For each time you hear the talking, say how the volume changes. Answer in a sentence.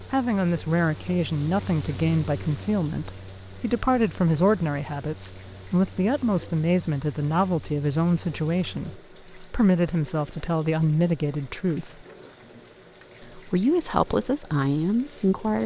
You can hear the talking from 0.0 to 12.1 s, at a steady volume; and briefly from 13.2 to 15.6 s.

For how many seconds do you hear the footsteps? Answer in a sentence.
The footsteps can't be heard in this clip.